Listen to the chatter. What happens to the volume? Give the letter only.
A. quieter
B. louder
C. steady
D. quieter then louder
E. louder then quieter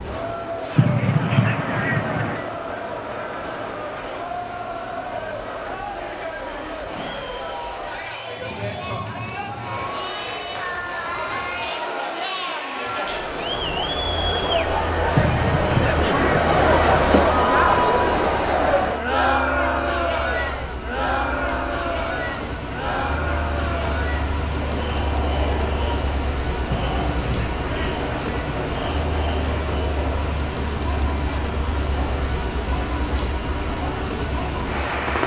E.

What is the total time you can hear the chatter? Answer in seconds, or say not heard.
35 s.